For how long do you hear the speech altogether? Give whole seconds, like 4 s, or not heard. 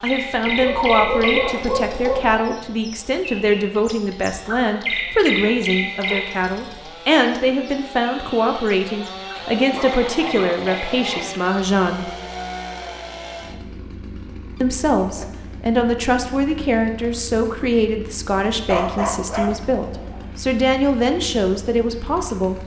20 s.